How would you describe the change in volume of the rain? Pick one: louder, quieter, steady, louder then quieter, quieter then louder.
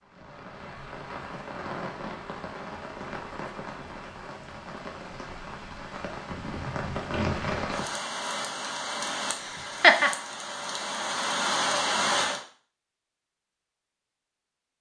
louder.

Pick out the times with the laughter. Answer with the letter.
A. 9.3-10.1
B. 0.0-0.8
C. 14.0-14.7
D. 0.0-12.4
A.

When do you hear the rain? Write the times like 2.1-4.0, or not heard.
0.0-12.4.